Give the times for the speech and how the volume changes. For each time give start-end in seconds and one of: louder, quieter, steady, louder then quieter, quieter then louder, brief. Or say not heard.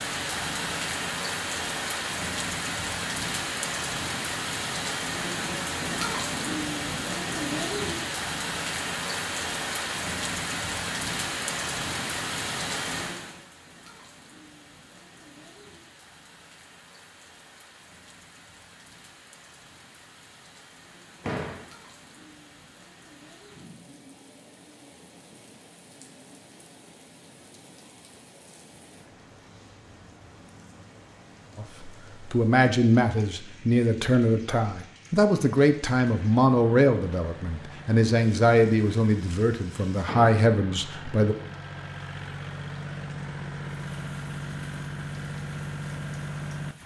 31.6-41.4 steady.